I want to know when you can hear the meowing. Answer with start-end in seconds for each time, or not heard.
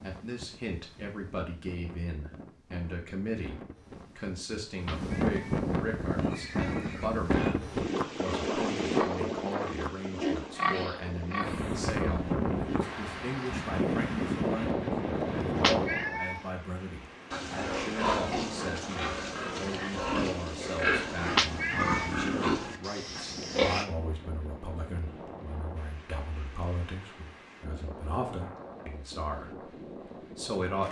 4.7-5.4, 15.3-16.4, 21.2-22.1.